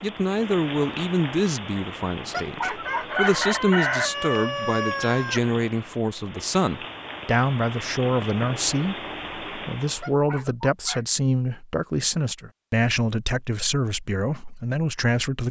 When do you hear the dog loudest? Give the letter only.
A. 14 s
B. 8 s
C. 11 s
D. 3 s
D.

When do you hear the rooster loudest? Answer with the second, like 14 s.
4 s.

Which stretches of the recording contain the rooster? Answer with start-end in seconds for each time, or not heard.
2.9-5.5.